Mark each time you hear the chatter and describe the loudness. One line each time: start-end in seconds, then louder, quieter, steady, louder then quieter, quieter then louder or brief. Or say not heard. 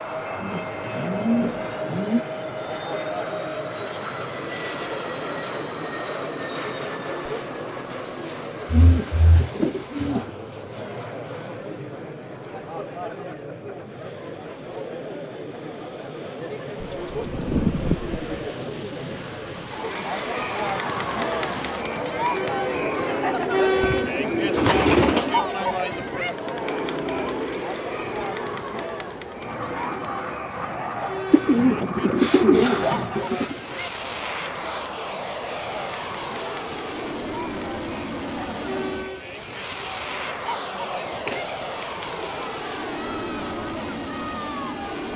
0.0-45.1 louder then quieter.